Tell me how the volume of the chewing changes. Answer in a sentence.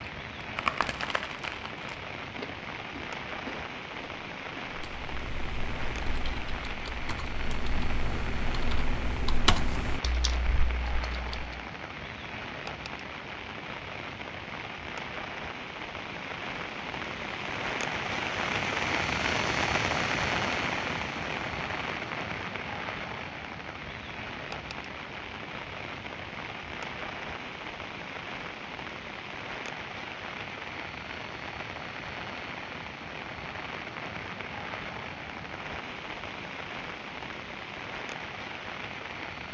The loudness of the chewing goes down.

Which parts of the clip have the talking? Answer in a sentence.
The talking can't be heard in this clip.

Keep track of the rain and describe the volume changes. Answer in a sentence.
The volume of the rain goes up, then down.